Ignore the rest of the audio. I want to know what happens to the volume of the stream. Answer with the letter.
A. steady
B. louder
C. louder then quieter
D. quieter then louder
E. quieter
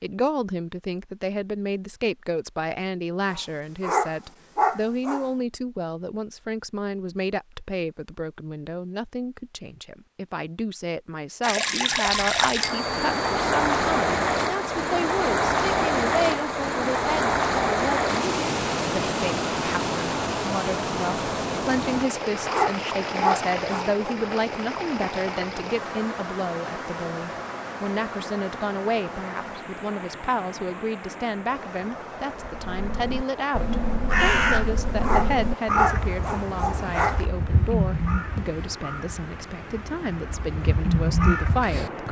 E.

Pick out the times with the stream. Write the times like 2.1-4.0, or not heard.
11.4-42.0.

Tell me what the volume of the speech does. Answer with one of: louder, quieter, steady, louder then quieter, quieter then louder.
steady.